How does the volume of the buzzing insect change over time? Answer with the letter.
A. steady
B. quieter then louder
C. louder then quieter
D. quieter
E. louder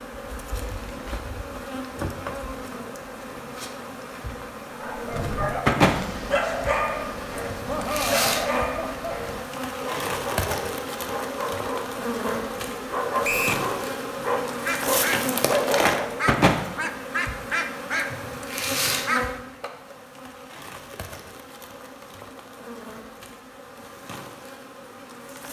C.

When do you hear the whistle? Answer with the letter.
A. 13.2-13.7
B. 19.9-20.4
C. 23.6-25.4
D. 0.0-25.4
A.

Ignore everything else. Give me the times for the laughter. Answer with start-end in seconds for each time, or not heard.
7.7-9.4.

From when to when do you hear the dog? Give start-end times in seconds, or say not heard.
4.7-16.3.